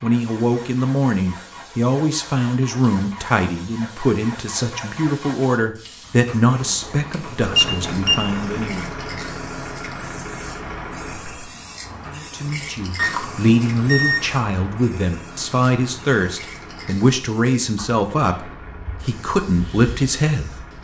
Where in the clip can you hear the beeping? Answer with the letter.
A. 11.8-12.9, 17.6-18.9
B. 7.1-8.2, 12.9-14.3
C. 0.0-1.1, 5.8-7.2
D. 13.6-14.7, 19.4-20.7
B.